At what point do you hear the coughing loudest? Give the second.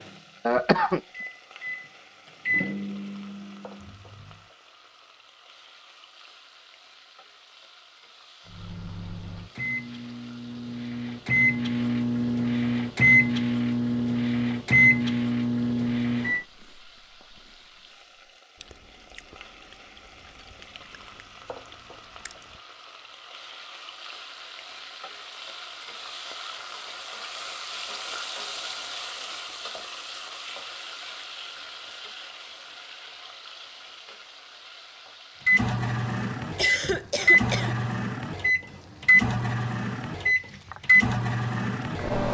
1 s.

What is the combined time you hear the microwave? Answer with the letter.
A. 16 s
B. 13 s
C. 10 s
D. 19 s
D.